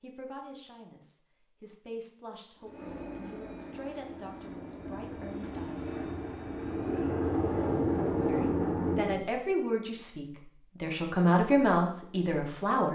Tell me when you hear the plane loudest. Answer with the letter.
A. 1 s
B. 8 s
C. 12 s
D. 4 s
B.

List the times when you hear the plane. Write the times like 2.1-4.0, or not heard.
2.6-9.2.